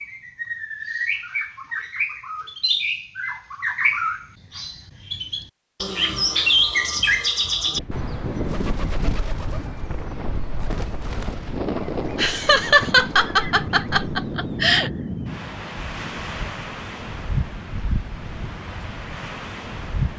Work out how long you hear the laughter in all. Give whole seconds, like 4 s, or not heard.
3 s.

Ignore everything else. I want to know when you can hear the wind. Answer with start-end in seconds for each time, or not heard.
7.7-20.1.